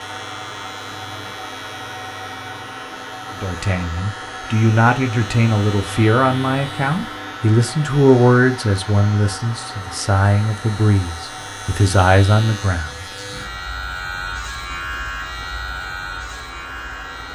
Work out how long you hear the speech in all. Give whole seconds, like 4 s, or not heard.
10 s.